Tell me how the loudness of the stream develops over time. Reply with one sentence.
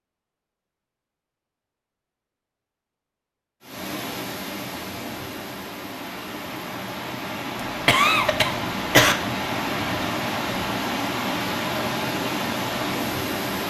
The volume of the stream goes up.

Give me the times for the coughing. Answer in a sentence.
You can hear the coughing from 7.8 to 9.2 s.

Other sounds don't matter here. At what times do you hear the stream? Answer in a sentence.
The stream can be heard from 3.6 to 13.6 s.